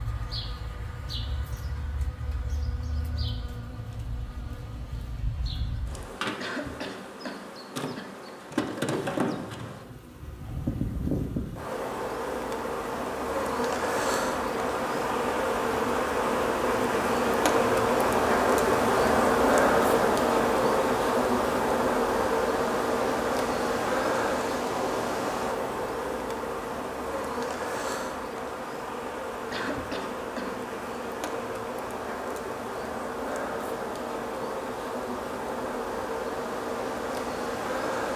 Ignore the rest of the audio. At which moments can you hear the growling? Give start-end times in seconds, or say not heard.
not heard.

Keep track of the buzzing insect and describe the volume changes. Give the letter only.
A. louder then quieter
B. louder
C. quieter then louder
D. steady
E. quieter
A.